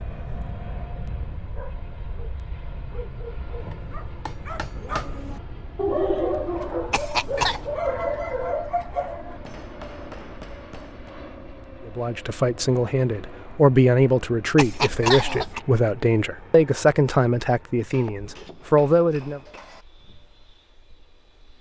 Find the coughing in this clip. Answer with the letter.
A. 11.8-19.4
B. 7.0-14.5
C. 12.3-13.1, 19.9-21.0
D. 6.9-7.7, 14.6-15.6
D.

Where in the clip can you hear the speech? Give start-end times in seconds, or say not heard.
11.8-19.4.